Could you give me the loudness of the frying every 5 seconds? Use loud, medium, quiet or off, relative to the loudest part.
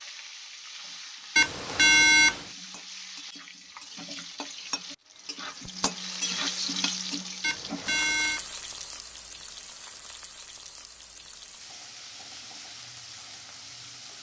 medium, loud, medium.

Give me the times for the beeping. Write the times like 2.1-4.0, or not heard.
1.4-2.5, 7.4-8.4.